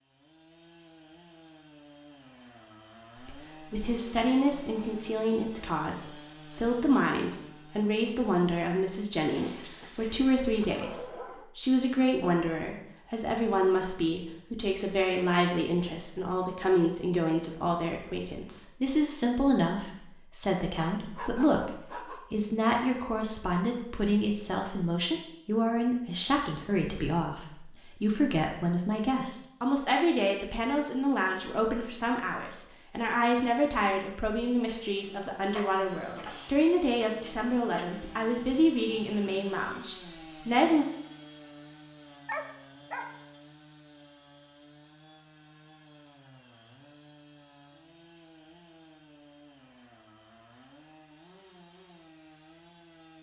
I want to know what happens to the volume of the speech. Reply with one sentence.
The loudness of the speech stays about the same.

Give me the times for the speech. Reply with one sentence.
You can hear the speech from 3.1 to 40.9 s.